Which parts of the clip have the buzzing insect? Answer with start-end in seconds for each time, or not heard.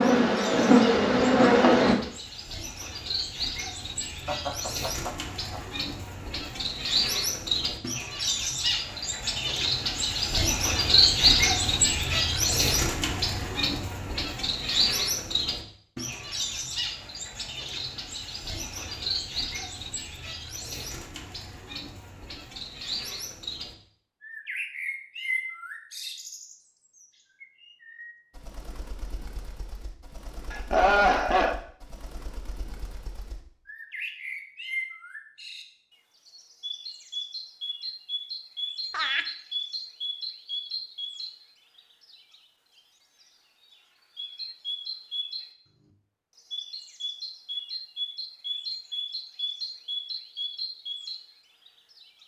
0.0-1.9.